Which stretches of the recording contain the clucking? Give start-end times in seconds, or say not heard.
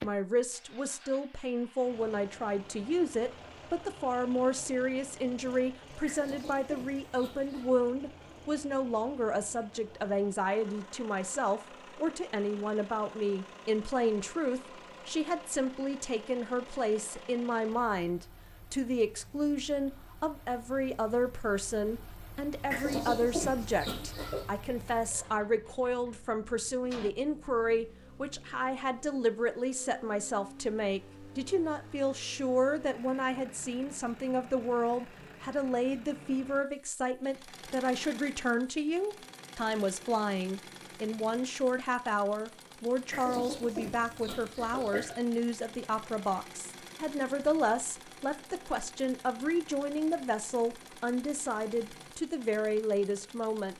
6.0-7.8, 22.7-24.4, 43.1-45.2.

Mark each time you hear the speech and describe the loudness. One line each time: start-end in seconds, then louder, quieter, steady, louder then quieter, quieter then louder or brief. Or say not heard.
0.0-53.7 steady.